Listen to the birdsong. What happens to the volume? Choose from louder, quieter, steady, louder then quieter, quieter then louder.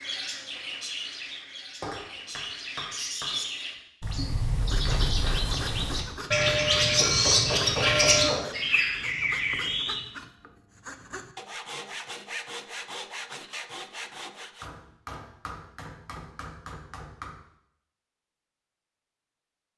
louder.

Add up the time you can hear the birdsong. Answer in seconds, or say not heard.
10 s.